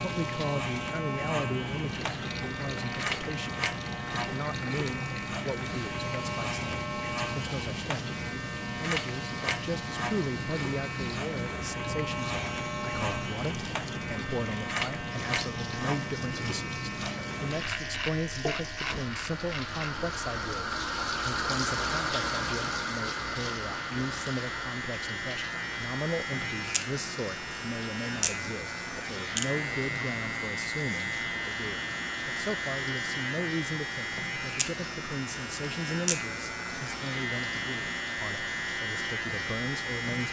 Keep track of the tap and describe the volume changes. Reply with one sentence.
The volume of the tap goes up, then down.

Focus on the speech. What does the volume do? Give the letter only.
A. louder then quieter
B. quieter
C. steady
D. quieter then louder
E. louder
C.